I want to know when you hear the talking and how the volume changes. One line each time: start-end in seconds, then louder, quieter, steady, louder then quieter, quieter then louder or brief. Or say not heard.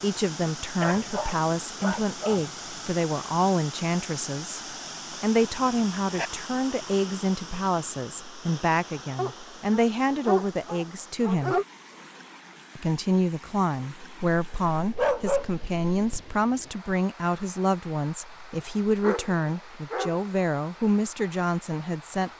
0.0-4.6 steady
5.2-11.6 steady
12.8-22.3 steady.